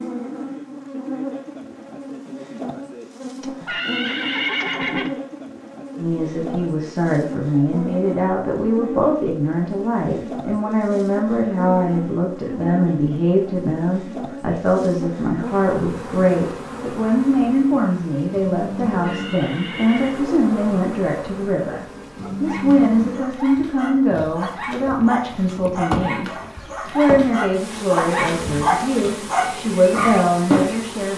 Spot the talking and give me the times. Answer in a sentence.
You can hear the talking from 6.0 to 26.3 s and from 26.9 to 31.1 s.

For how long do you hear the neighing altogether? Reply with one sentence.
You can hear the neighing for 3 seconds altogether.